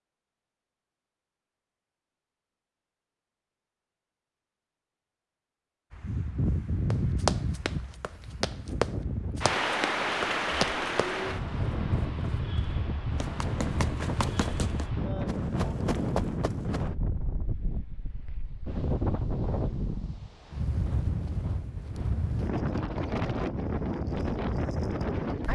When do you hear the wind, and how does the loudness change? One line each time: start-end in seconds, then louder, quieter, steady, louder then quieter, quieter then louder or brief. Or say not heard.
5.9-25.4 steady.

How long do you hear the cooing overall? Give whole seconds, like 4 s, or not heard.
not heard.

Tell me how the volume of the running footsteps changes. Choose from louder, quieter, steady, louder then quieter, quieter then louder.
quieter.